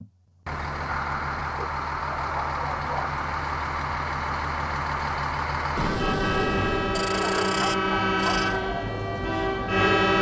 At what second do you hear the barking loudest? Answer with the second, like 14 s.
8 s.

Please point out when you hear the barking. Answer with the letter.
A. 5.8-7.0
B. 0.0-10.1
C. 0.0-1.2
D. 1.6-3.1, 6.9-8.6
D.